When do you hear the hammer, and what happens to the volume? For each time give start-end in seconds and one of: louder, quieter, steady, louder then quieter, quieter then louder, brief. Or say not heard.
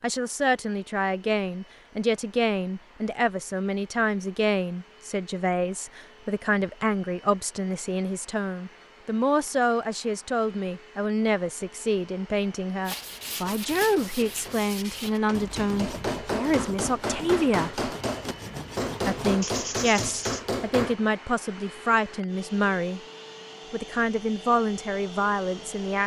13.2-20.9 louder.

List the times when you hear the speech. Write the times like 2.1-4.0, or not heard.
0.0-17.8, 19.1-23.0, 23.7-26.0.